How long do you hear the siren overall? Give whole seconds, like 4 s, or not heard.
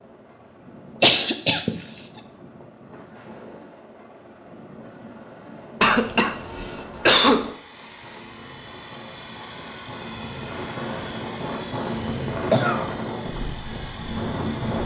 not heard.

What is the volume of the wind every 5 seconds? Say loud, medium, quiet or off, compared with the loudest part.
quiet, quiet, loud.